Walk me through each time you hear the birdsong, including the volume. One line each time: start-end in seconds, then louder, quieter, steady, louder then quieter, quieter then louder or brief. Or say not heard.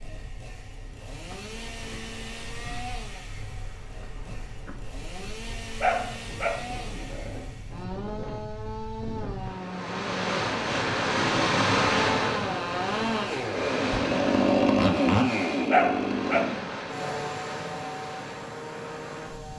not heard.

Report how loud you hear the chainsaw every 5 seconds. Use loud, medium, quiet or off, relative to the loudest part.
quiet, quiet, loud, loud.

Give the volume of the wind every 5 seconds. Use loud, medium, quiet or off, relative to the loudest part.
quiet, quiet, loud, medium.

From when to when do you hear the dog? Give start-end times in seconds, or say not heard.
5.8-7.5, 15.7-17.2.